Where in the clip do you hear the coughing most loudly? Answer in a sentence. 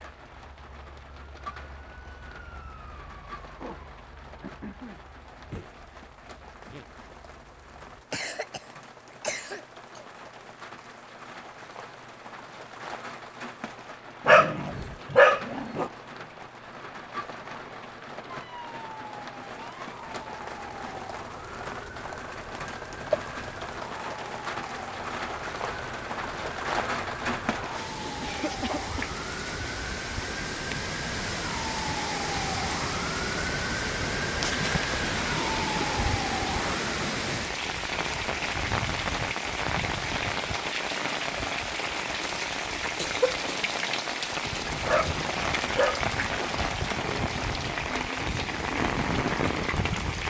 The volume of the coughing peaks at 43 seconds.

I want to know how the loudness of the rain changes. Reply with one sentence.
The volume of the rain goes up.